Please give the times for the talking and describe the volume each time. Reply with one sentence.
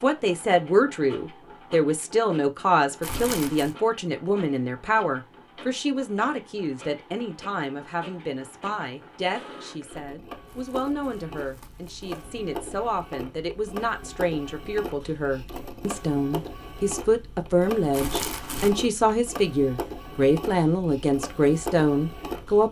You can hear the talking from 0.0 to 22.6 s, getting quieter then louder.